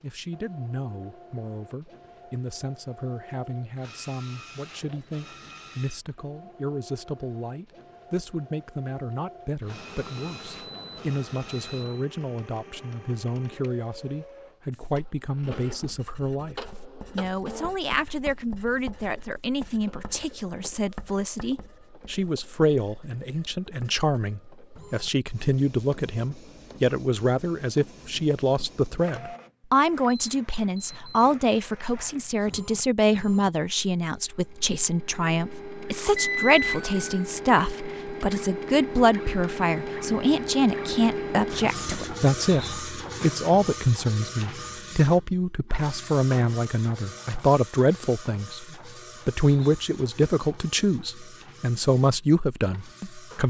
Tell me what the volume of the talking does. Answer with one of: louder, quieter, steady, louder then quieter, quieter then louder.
louder.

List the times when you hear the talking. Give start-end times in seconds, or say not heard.
0.0-48.6, 49.2-53.4.